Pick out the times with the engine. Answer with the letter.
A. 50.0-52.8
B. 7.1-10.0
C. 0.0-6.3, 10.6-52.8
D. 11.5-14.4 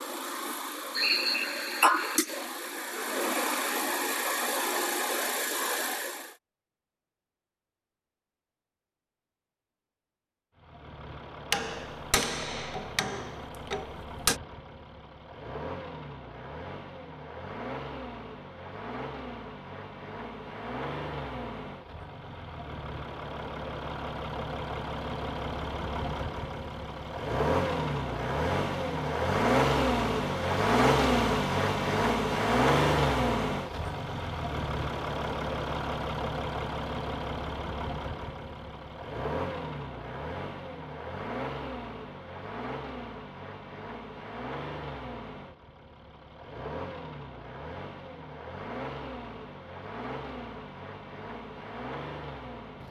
C.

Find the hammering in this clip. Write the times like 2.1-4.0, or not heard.
11.5-14.4.